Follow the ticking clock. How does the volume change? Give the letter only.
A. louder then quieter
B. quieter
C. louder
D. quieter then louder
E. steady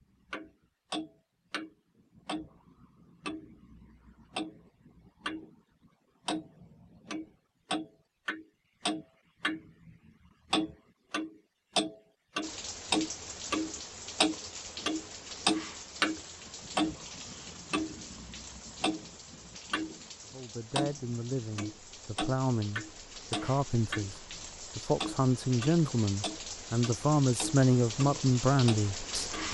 A.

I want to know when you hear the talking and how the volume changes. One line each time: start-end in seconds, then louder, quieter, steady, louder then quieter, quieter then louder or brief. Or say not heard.
20.3-29.3 louder.